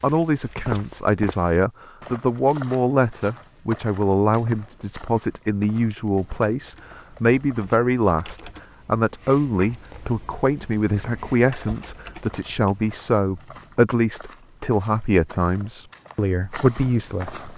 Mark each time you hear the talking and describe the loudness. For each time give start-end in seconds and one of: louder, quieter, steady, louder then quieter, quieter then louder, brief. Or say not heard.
0.0-17.4 steady.